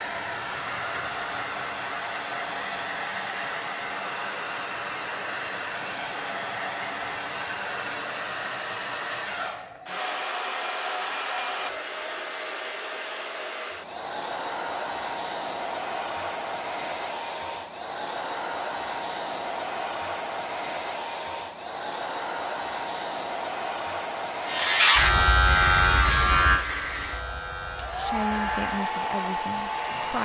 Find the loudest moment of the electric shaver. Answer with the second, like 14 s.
25 s.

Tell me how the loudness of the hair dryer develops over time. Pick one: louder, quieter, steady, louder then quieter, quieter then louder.
steady.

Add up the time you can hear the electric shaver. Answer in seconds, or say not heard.
6 s.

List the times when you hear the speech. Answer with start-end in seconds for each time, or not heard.
27.9-30.2.